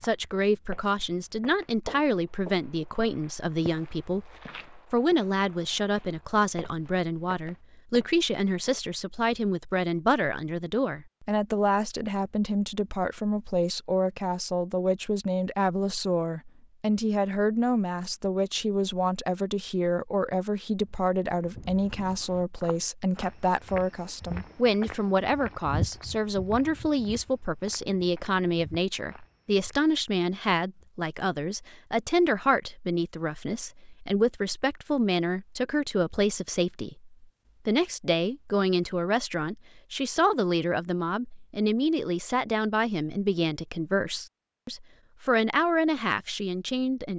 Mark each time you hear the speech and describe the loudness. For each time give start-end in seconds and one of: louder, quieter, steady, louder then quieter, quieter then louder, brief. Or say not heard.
0.0-47.1 steady.